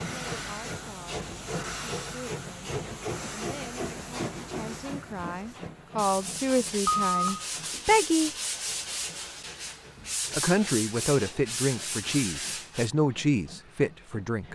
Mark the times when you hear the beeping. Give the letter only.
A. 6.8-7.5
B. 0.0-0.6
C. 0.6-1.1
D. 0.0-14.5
A.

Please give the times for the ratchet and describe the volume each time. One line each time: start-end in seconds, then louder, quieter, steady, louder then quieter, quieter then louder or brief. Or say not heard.
not heard.